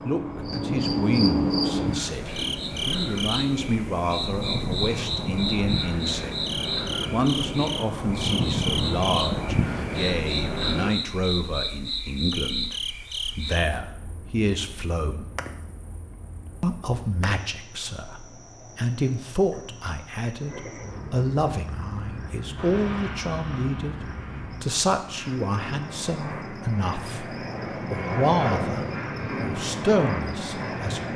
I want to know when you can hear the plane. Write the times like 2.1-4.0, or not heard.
0.0-10.9, 22.6-31.1.